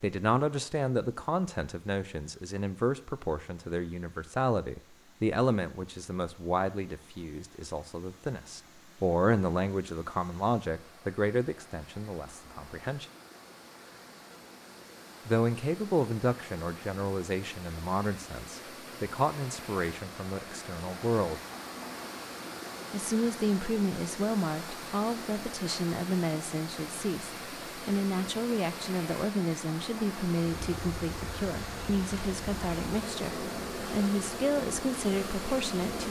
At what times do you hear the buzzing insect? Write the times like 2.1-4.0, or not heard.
30.6-36.0.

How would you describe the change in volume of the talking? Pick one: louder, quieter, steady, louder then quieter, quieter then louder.
steady.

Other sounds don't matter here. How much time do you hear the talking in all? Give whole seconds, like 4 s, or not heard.
32 s.